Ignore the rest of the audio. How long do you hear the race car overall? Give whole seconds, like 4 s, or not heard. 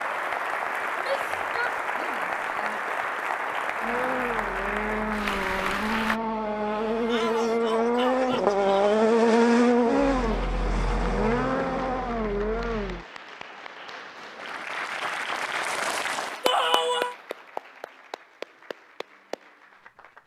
9 s.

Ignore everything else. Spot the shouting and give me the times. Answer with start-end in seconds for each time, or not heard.
0.9-2.9, 7.0-9.1, 16.4-17.1.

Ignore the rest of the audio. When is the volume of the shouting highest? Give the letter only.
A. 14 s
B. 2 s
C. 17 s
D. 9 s
C.